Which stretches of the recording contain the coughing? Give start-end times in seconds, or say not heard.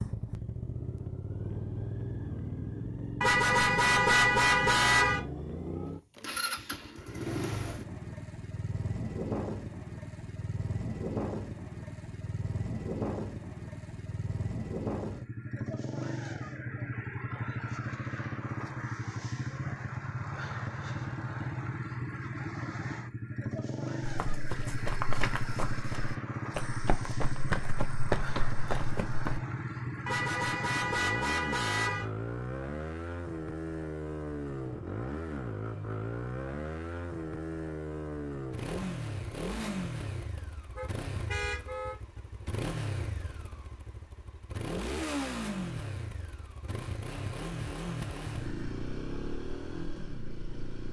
not heard.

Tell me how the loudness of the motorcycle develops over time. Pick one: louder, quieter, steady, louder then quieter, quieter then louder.
steady.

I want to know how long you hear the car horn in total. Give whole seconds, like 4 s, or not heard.
5 s.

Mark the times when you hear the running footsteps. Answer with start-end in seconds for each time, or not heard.
24.0-29.4.